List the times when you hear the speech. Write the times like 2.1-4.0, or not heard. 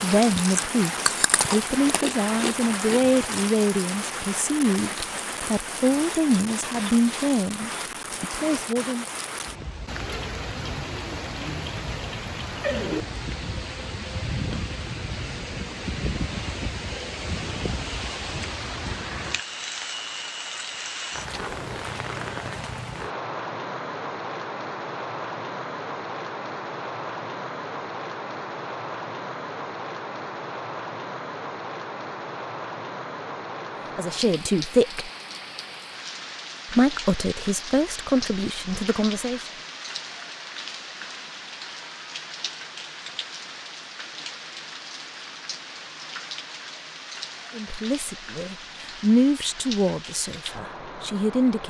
0.0-9.1, 34.0-35.1, 36.6-39.5, 47.5-51.6.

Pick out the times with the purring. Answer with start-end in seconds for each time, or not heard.
not heard.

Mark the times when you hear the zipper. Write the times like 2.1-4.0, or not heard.
not heard.